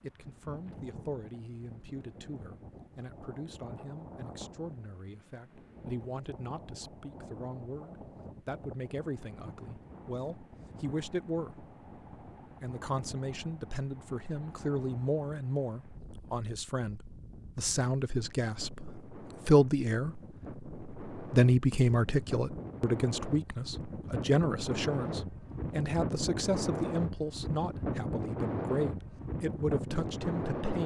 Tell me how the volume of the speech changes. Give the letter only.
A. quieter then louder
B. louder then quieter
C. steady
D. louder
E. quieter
B.